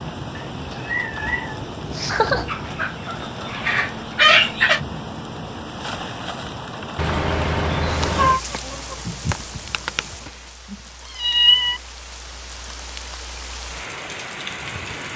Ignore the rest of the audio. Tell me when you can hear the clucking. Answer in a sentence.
The clucking can be heard from 2.5 to 4.8 s and from 8.2 to 10.2 s.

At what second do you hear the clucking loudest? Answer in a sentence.
The volume of the clucking peaks at 4 seconds.